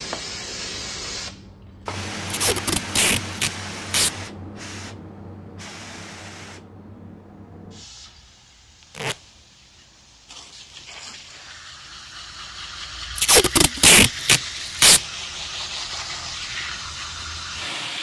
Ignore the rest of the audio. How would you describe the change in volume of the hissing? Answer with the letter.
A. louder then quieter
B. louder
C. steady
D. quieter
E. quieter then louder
E.